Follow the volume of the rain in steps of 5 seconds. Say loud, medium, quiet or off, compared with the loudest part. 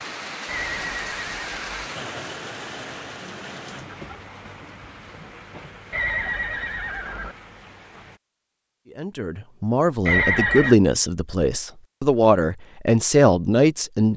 loud, medium, off.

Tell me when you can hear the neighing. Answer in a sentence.
You can hear the neighing from 0.5 to 1.9 s, from 5.9 to 7.3 s and from 10.1 to 10.8 s.